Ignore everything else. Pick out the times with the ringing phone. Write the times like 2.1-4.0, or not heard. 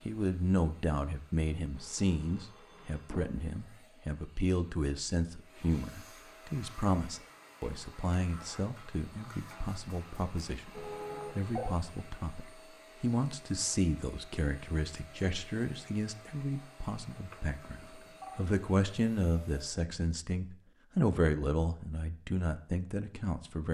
1.8-3.3, 10.7-11.8, 17.3-18.4.